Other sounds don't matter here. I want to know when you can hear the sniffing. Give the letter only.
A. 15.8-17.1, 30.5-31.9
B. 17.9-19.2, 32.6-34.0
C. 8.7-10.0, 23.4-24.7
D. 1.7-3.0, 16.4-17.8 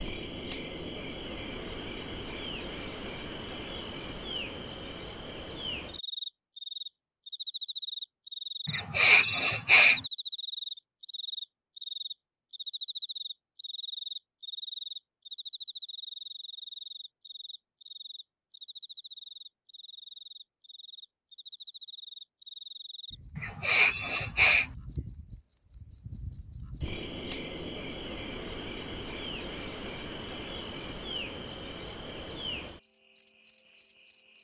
C.